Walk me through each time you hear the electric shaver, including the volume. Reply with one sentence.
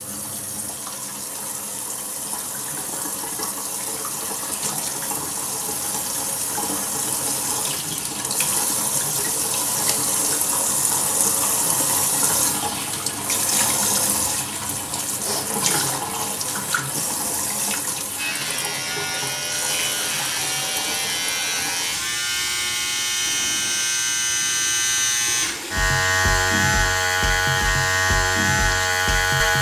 You can hear the electric shaver from 18.1 to 29.5 s, getting louder.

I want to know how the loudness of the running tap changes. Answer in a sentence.
The volume of the running tap goes up, then down.